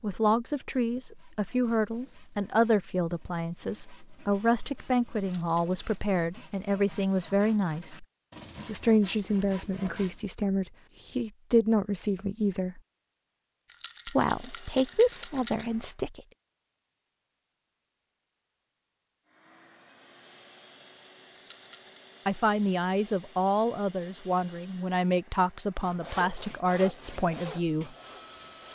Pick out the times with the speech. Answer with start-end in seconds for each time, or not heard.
0.0-8.1, 8.7-12.8, 14.1-16.2, 22.2-27.9.